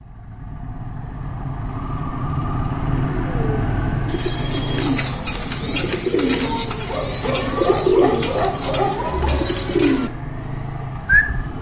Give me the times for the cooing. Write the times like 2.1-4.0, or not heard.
3.1-11.5.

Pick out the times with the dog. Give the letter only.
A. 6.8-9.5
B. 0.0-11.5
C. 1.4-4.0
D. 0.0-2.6
A.